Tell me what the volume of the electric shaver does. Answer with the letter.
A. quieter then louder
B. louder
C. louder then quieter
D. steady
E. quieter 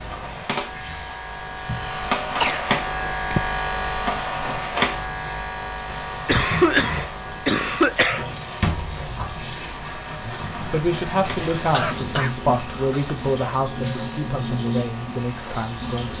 E.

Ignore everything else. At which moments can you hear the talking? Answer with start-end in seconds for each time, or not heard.
10.2-16.1.